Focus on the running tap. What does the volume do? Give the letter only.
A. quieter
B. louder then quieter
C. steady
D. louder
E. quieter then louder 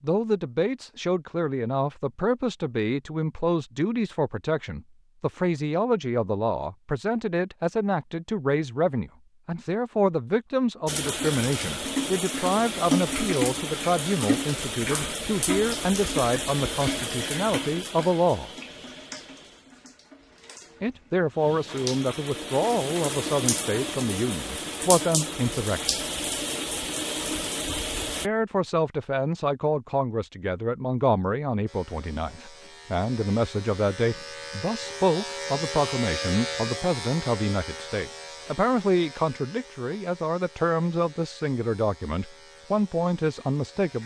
E.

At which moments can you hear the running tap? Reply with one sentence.
The running tap can be heard from 10.8 to 28.3 s.